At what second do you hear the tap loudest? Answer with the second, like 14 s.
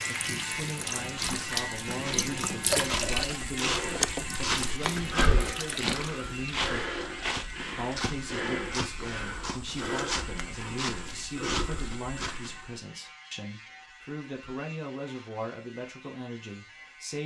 3 s.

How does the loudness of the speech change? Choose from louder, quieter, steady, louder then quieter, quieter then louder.
steady.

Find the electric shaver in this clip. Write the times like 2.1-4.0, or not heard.
0.0-17.2.